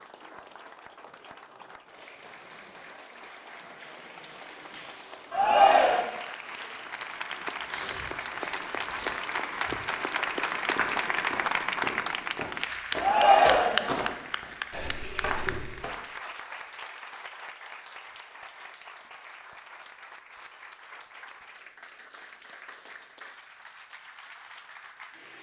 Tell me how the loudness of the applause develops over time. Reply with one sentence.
The volume of the applause goes up, then down.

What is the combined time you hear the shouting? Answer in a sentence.
The shouting can be heard for 2 seconds in total.